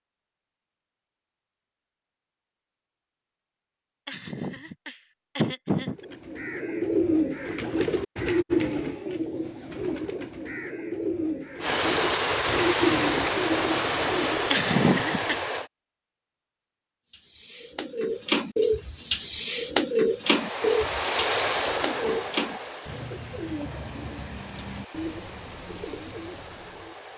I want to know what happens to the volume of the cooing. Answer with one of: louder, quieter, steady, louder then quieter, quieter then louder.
quieter.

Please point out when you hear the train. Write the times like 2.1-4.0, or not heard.
11.6-15.7, 20.2-27.1.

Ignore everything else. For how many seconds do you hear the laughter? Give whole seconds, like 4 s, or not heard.
3 s.